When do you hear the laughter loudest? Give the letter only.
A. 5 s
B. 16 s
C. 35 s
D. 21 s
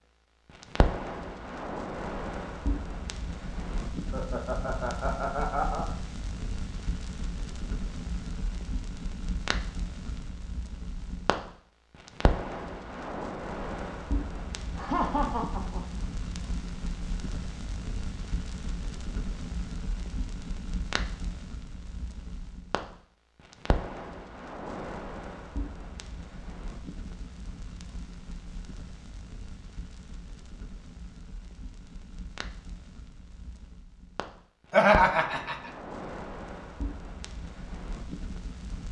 C.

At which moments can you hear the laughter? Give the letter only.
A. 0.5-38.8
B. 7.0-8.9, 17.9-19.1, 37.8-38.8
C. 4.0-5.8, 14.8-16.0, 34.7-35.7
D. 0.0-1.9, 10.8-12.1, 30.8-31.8
C.